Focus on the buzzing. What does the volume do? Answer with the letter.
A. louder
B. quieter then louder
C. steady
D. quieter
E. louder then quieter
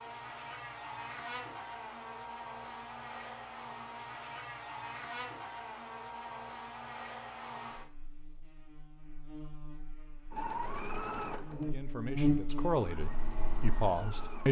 B.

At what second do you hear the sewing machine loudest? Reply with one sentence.
The loudest moment of the sewing machine is at 11 seconds.